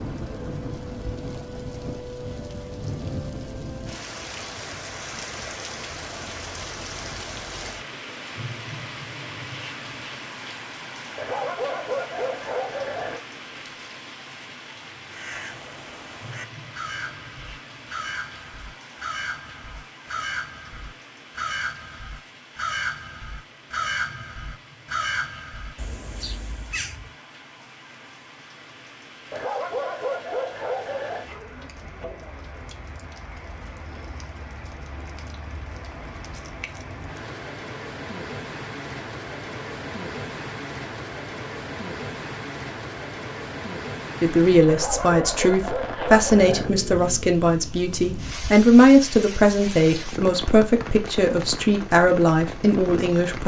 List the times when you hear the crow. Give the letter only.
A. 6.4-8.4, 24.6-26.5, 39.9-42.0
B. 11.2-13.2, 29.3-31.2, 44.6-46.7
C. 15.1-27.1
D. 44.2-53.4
C.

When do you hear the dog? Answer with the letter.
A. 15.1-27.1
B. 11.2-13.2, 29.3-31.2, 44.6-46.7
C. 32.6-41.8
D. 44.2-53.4
B.